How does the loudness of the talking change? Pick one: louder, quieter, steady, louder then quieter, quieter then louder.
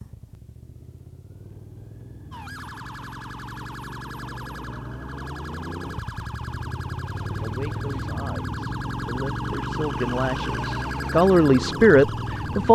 louder.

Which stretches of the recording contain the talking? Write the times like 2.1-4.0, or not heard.
7.4-12.7.